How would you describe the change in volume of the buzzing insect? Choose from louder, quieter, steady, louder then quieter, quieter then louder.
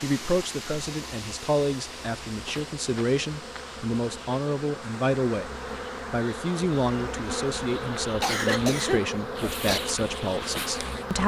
louder.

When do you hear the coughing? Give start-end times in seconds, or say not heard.
2.8-3.2, 8.2-9.8.